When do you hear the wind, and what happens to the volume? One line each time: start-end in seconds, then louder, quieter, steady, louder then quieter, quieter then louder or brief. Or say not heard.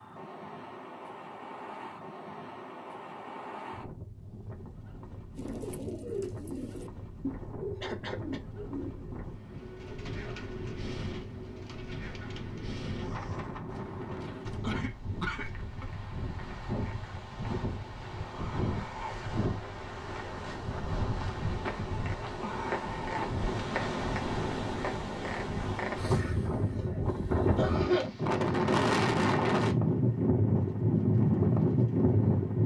0.0-32.6 louder.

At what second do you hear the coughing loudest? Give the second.
28 s.